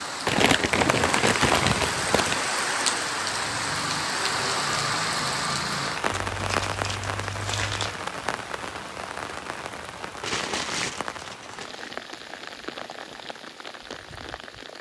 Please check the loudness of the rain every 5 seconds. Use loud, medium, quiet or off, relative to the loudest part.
loud, loud, medium.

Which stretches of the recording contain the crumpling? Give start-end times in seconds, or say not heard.
0.2-2.5, 6.1-8.0, 10.2-11.9.